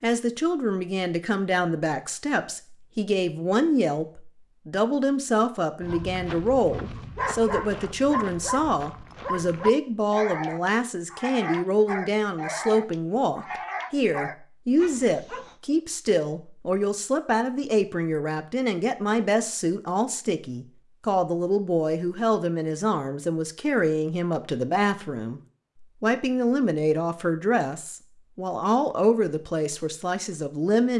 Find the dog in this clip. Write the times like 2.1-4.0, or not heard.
5.8-15.6.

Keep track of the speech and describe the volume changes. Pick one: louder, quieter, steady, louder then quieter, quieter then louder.
steady.